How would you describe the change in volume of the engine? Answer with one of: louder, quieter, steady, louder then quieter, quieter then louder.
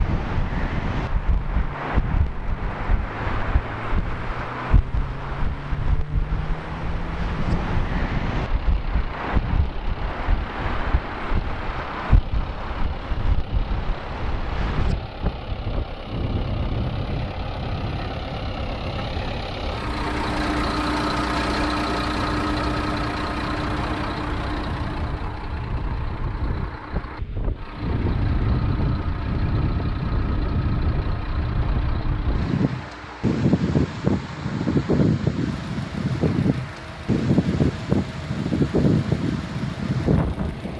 louder then quieter.